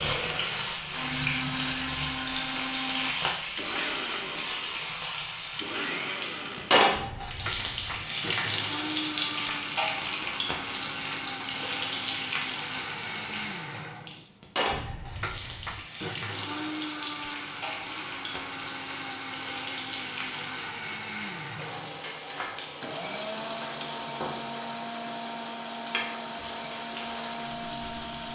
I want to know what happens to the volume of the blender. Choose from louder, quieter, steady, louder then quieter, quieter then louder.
steady.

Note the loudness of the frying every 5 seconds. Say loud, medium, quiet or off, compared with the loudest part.
loud, loud, medium, quiet, quiet, quiet.